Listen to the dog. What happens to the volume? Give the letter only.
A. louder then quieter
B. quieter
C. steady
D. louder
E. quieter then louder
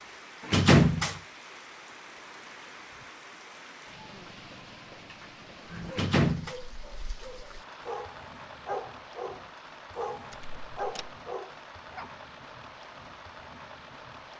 D.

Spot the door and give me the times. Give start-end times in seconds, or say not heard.
0.5-1.2, 5.9-6.5, 10.3-11.1.